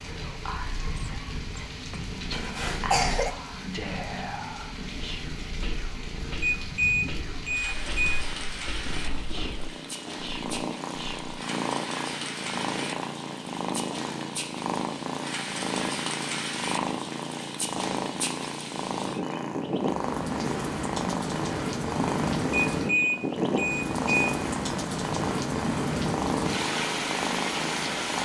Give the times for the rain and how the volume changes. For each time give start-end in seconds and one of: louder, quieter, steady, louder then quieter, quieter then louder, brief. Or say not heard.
0.0-28.2 louder.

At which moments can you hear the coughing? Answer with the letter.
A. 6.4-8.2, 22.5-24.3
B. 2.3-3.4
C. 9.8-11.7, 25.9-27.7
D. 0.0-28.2
B.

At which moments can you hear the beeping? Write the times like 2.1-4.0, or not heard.
6.4-8.2, 22.5-24.3.